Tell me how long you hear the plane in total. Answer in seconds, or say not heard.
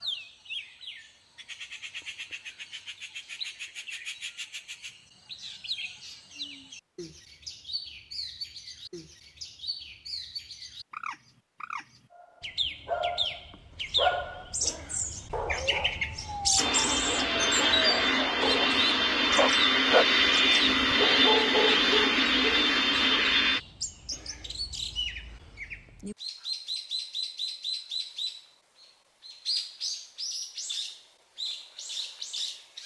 7 s.